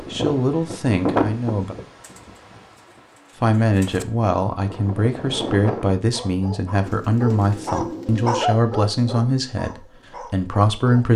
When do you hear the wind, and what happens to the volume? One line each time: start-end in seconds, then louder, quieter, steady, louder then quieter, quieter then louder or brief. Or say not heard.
0.0-6.0 quieter then louder.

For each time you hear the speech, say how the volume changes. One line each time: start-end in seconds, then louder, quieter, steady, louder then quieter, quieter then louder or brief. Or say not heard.
0.1-1.8 brief
3.4-11.1 steady.